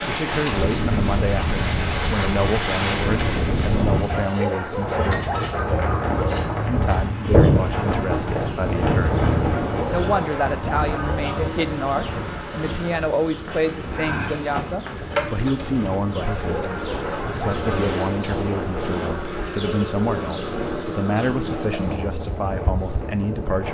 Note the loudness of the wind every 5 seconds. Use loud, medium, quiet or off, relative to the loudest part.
loud, loud, medium, medium, medium.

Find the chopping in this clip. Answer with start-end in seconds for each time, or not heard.
not heard.